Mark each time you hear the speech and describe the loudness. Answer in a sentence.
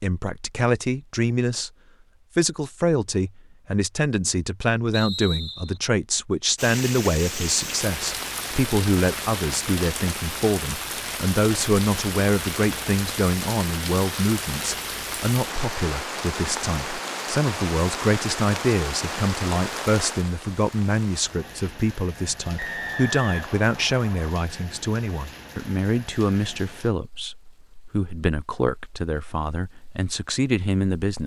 You can hear the speech briefly from 0.0 to 1.7 s; and from 2.4 to 31.2 s, at a steady volume.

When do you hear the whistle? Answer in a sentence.
You can hear the whistle from 4.9 to 5.8 s and from 22.6 to 24.3 s.